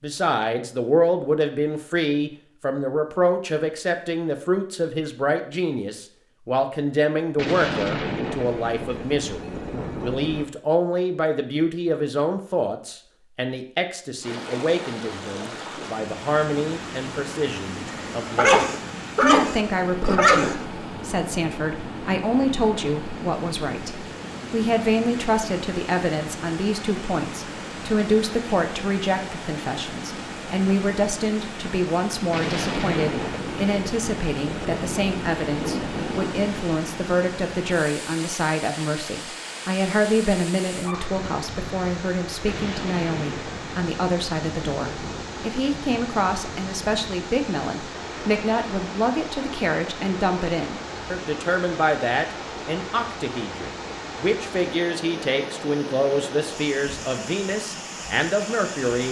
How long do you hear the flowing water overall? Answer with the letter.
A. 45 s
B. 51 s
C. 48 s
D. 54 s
A.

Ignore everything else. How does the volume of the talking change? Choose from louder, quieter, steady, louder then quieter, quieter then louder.
steady.